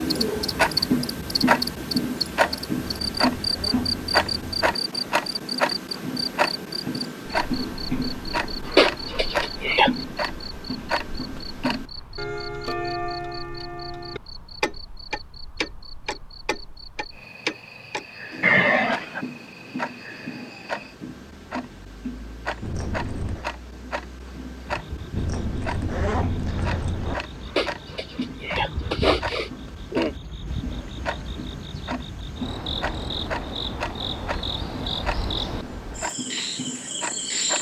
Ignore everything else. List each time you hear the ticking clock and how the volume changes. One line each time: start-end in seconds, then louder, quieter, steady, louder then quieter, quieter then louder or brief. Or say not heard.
0.0-37.5 quieter.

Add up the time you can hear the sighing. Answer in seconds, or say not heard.
5 s.